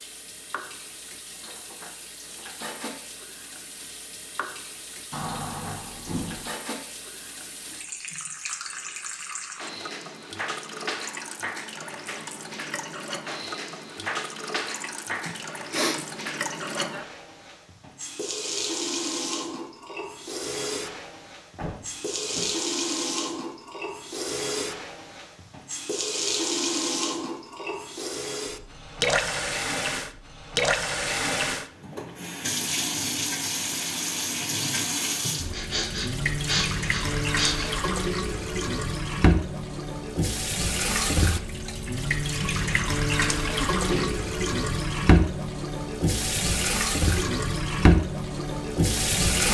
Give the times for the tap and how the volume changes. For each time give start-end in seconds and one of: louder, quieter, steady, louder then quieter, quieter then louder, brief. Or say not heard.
0.0-49.4 louder.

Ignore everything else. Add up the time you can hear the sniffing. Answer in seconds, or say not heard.
3 s.